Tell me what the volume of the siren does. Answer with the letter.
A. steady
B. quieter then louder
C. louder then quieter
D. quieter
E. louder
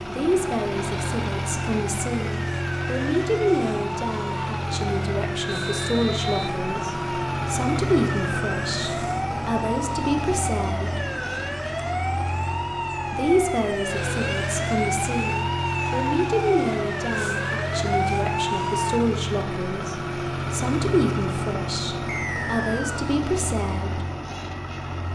E.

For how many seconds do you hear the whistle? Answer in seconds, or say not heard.
2 s.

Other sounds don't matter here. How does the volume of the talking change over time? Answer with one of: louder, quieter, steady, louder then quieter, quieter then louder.
steady.